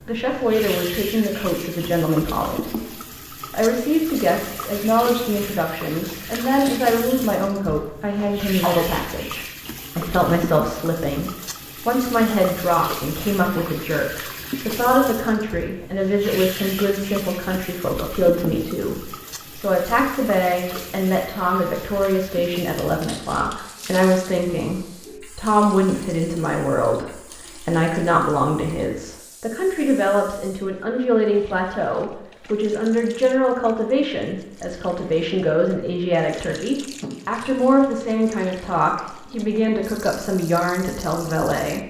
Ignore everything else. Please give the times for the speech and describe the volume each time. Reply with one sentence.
You can hear the speech from 0.1 to 41.8 s, at a steady volume.